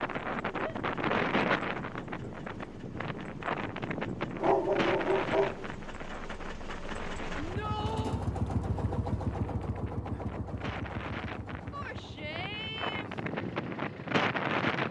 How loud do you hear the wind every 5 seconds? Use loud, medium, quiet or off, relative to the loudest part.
loud, medium, loud.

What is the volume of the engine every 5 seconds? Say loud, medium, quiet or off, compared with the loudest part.
quiet, loud, medium.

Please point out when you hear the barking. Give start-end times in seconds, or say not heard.
4.3-5.8.